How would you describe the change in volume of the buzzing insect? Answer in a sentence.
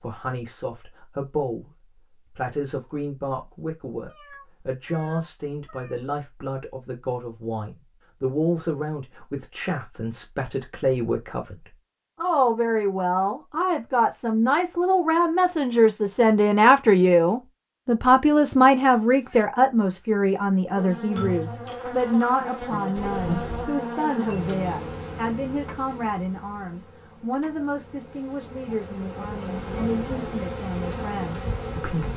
The volume of the buzzing insect goes down, then up.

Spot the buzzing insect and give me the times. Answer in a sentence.
The buzzing insect can be heard from 20.8 to 32.1 s.